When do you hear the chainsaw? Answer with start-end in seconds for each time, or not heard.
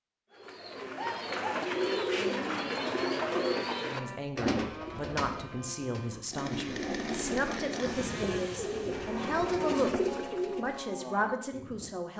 6.3-9.8.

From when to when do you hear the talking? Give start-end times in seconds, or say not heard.
3.8-12.1.